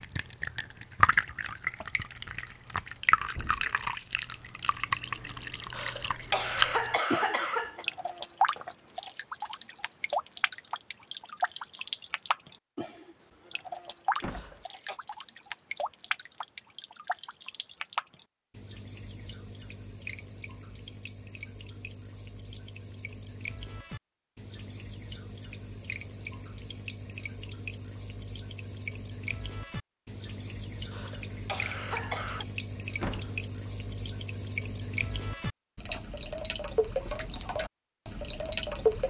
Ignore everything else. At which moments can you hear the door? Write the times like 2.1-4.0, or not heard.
3.3-3.7, 14.2-14.7, 33.0-33.5.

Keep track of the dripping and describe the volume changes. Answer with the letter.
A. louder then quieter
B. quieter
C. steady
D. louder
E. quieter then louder
E.